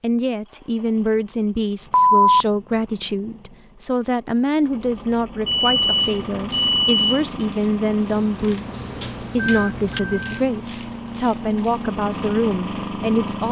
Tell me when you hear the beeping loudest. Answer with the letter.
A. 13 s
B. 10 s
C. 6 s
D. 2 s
D.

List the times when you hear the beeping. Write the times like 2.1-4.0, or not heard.
1.9-2.5, 5.5-7.2, 9.3-10.4.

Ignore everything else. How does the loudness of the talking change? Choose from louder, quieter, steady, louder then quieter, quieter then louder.
steady.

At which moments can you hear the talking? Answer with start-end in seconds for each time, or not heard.
0.0-13.4.